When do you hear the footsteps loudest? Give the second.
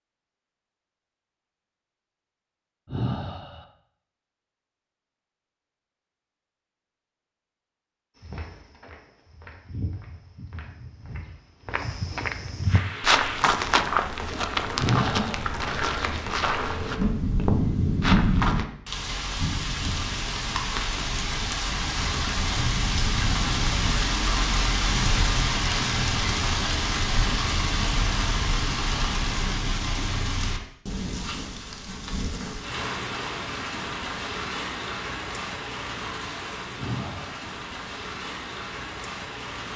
13 s.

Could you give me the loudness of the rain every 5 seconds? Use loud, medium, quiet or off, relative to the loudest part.
off, off, medium, loud, loud, loud, medium, medium.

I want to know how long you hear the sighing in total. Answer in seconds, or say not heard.
2 s.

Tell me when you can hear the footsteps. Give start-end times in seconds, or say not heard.
8.2-18.6.